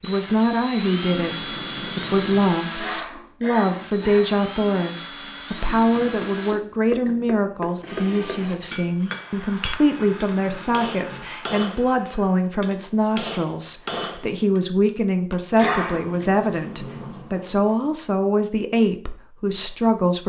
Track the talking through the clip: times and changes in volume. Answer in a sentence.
You can hear the talking from 0.0 to 20.2 s, at a steady volume.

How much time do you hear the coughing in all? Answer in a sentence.
The coughing can be heard for 2 seconds in total.